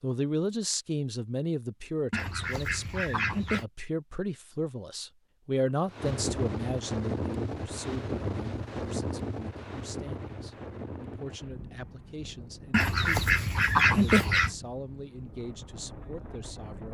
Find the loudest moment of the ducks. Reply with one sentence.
The volume of the ducks peaks at 14 seconds.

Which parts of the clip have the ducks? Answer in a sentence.
The ducks can be heard from 2.1 to 3.6 s and from 12.7 to 14.6 s.